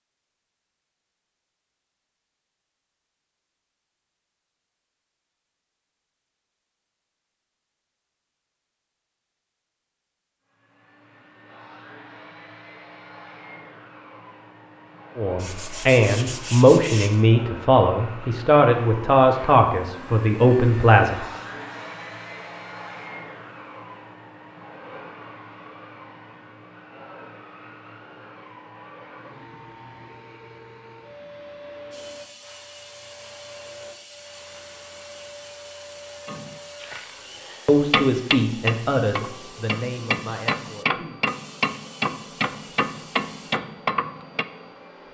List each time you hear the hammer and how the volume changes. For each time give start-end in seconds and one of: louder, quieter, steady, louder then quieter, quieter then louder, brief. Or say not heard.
36.2-44.5 steady.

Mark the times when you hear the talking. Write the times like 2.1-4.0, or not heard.
15.2-21.2, 37.6-41.3.